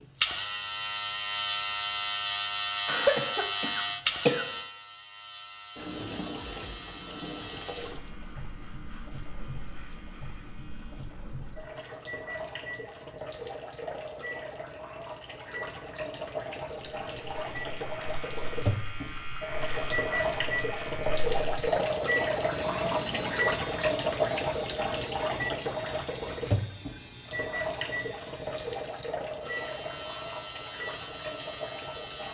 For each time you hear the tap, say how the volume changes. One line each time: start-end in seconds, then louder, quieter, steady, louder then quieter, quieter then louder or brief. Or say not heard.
5.8-32.2 louder then quieter.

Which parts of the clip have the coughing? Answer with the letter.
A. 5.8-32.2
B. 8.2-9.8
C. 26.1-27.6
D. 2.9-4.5
D.